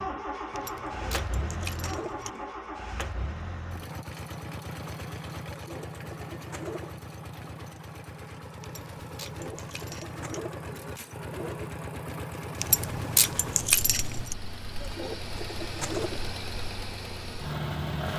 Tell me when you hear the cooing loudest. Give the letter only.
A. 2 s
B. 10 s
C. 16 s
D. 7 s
C.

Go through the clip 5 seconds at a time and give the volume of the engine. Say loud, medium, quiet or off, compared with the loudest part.
loud, medium, loud, loud.